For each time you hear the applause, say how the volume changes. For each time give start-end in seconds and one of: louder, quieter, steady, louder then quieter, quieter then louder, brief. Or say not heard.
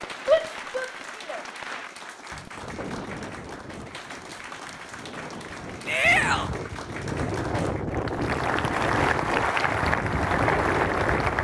0.0-11.4 louder.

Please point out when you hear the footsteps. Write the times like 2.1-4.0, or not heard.
not heard.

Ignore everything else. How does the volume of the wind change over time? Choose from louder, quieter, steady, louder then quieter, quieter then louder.
louder.